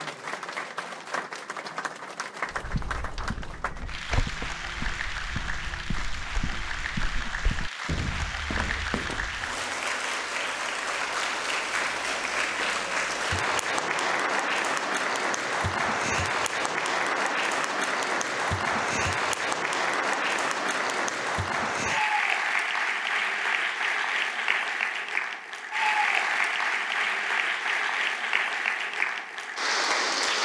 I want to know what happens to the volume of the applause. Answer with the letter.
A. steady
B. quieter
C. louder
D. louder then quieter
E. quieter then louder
C.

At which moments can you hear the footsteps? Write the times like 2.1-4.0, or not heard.
2.5-9.6.